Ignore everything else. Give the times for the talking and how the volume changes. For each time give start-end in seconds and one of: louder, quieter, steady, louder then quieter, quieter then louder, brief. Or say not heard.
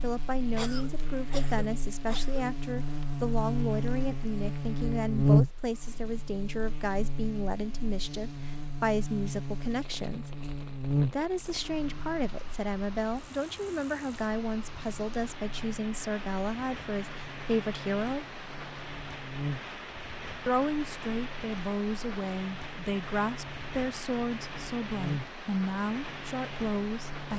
0.0-10.3 steady
11.1-18.3 steady
20.4-27.3 steady.